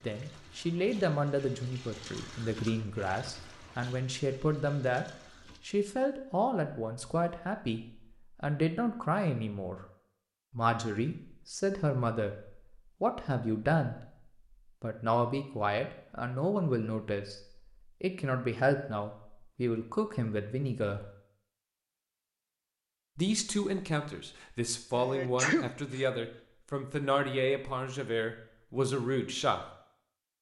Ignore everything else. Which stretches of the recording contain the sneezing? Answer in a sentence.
You can hear the sneezing from 24.9 to 26.0 s.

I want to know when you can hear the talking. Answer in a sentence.
The talking can be heard from 0.0 to 5.0 s, from 5.7 to 9.8 s, from 10.5 to 14.0 s, from 14.8 to 17.4 s, from 18.0 to 21.1 s and from 23.1 to 29.6 s.